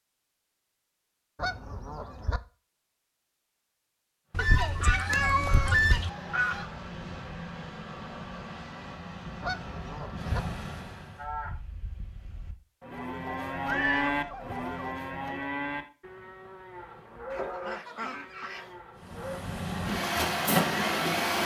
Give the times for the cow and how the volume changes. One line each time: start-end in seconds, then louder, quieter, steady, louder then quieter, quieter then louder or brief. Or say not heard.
11.2-19.4 louder then quieter.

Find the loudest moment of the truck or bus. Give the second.
21 s.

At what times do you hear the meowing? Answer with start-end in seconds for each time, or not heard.
4.3-6.1, 13.7-14.6.